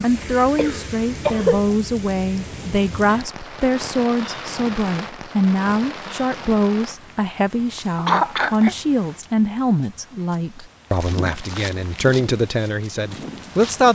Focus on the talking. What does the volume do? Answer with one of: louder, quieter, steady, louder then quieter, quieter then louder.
steady.